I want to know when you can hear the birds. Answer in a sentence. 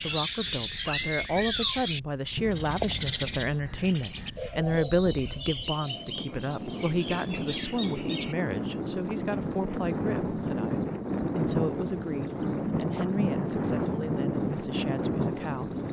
You can hear the birds from 0.0 to 15.8 s.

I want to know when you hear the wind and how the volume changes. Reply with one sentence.
You can hear the wind from 0.0 to 15.8 s, getting louder.